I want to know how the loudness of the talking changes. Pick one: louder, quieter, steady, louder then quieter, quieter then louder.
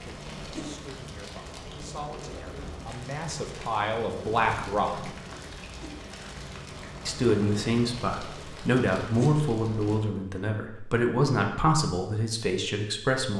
louder.